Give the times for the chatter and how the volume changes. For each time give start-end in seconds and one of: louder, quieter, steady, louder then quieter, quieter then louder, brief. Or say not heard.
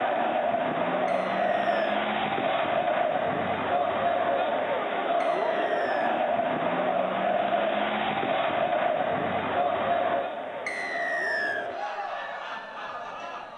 0.0-13.5 quieter.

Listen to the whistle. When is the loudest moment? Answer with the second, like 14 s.
11 s.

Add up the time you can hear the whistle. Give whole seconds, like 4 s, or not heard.
3 s.